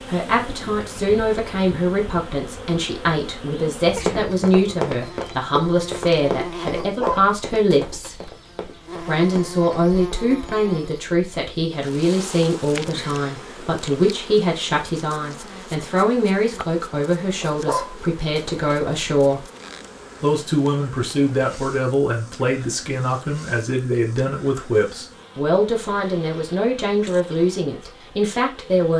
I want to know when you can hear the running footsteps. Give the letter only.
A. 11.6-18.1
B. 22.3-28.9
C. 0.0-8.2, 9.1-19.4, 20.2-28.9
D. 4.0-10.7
D.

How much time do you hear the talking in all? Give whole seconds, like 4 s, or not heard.
27 s.